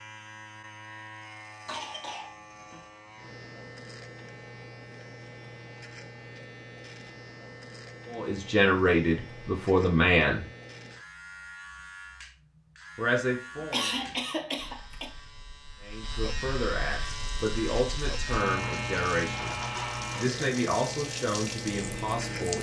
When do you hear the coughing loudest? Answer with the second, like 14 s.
14 s.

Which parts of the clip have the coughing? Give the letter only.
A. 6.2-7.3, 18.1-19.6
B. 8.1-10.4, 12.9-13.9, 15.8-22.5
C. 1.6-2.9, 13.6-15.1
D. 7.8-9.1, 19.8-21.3
C.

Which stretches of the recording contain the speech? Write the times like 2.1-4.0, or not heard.
8.1-10.4, 12.9-13.9, 15.8-22.5.